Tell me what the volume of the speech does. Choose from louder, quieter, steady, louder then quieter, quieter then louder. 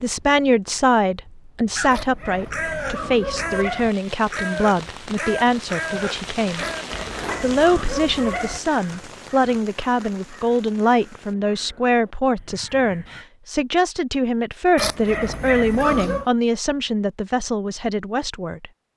steady.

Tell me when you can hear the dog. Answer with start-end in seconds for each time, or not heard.
1.9-3.9, 6.5-8.6, 14.8-16.2.